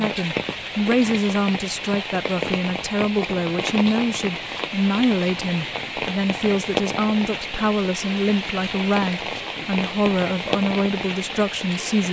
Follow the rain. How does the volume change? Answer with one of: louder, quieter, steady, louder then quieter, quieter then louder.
steady.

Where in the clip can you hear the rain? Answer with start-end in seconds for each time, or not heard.
0.0-12.0.